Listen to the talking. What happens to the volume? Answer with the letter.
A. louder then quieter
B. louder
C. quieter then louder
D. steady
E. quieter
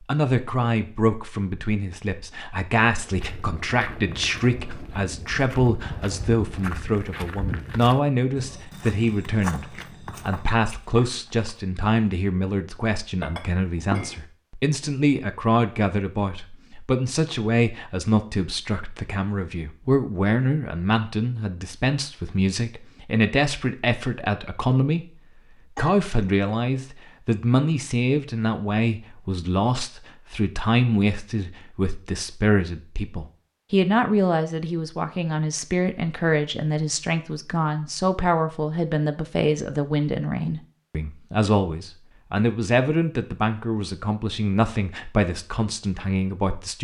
D.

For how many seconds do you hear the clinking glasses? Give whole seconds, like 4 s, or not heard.
2 s.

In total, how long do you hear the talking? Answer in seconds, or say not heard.
46 s.